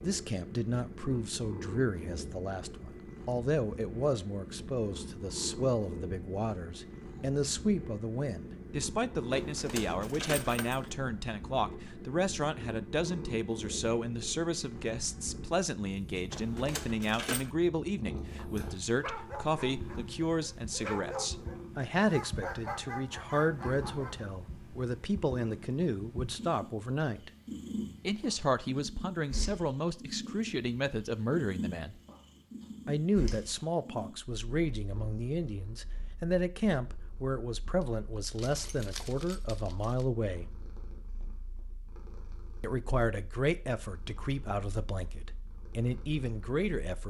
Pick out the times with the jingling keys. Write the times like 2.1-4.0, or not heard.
9.3-10.9, 16.3-17.5, 38.3-40.0.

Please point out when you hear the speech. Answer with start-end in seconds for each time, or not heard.
0.0-27.3, 28.1-31.9, 32.9-40.5, 42.6-47.0.